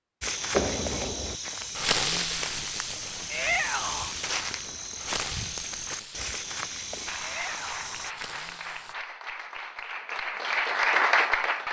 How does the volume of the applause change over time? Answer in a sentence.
The volume of the applause goes up.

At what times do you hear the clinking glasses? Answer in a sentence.
The clinking glasses can't be heard in this clip.